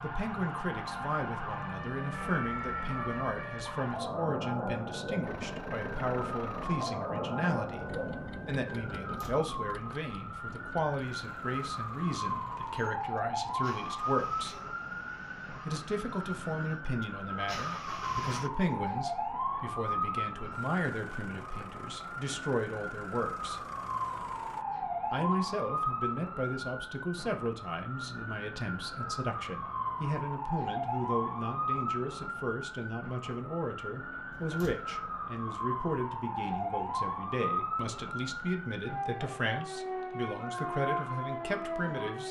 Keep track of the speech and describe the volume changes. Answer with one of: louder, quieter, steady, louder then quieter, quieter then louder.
steady.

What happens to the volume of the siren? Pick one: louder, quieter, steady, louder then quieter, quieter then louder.
steady.